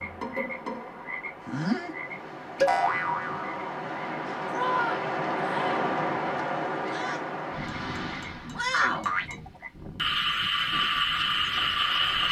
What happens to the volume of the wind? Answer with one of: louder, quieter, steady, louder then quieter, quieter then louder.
louder then quieter.